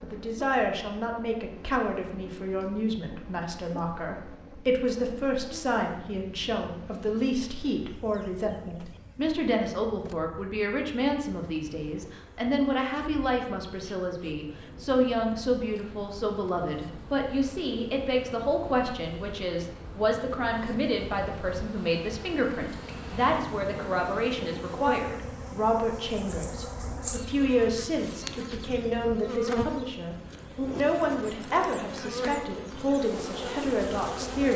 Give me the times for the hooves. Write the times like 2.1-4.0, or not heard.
not heard.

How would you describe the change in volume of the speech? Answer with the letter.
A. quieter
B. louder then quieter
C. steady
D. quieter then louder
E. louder
C.